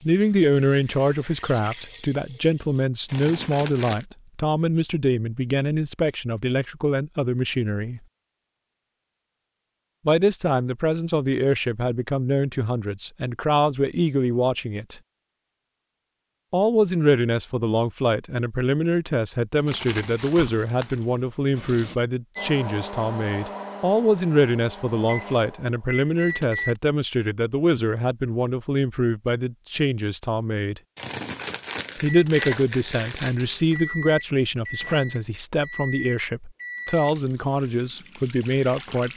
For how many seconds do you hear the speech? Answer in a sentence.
The speech can be heard for 34 seconds in total.